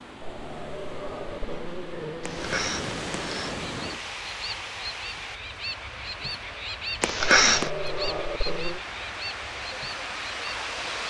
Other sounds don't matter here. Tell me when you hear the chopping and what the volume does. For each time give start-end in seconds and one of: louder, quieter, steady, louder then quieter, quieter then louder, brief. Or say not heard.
not heard.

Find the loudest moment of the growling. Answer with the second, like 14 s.
8 s.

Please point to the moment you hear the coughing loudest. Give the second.
7 s.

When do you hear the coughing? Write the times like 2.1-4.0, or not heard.
2.2-3.5, 7.0-7.7.